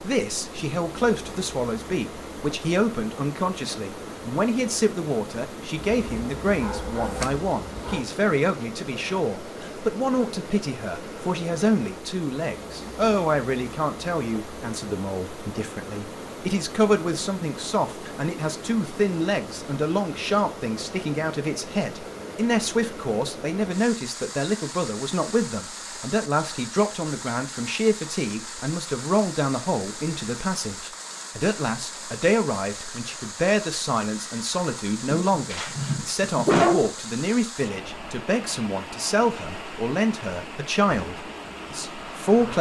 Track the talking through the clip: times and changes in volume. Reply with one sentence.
The talking can be heard from 0.0 to 42.5 s, at a steady volume.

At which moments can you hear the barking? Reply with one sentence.
You can hear the barking from 5.8 to 8.0 s and from 35.1 to 36.9 s.